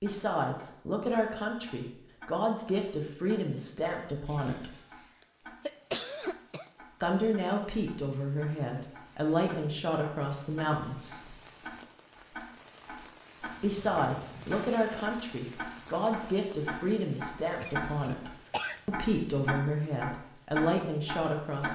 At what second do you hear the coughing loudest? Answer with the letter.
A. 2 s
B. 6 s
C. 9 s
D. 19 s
B.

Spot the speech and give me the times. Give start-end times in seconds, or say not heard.
0.0-4.7, 7.0-11.3, 13.6-21.7.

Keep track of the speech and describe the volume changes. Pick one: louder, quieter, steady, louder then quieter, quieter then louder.
steady.